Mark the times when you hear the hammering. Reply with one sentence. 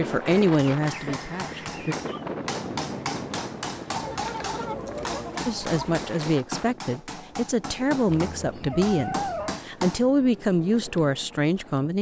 You can hear the hammering from 0.1 to 10.1 s.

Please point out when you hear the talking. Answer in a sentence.
The talking can be heard from 0.0 to 1.9 s and from 5.5 to 11.9 s.